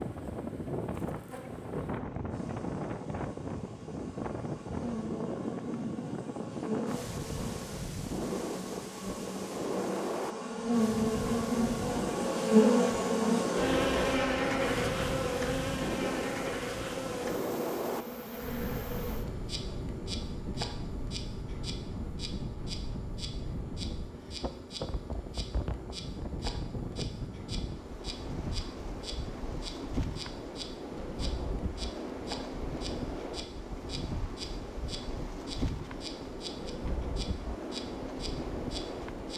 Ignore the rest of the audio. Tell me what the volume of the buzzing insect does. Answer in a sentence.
The loudness of the buzzing insect goes up, then down.